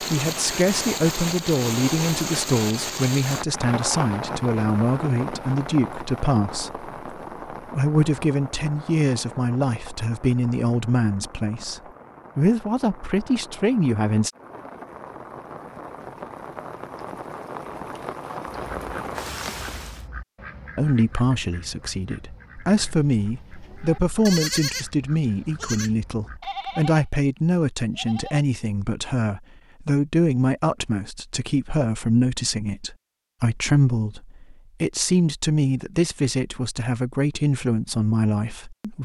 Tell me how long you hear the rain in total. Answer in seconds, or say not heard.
20 s.